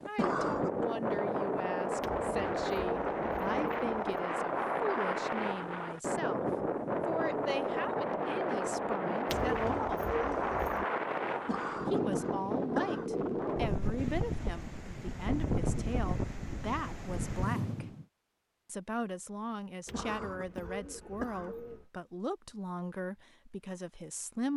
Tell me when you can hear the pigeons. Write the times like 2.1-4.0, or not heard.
2.0-4.2, 9.2-10.8, 19.9-21.9.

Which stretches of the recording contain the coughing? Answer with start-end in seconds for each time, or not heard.
0.1-0.8, 11.4-13.1, 19.9-21.6.